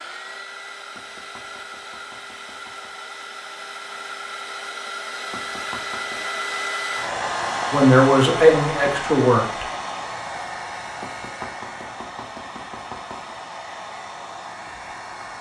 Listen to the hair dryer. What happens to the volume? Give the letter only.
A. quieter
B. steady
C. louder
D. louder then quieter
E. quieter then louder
D.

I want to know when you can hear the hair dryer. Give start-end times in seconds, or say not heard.
0.0-15.3.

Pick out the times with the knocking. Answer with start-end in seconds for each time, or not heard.
0.9-3.0, 5.3-6.3, 11.0-13.3.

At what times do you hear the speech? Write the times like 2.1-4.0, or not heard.
7.7-9.7.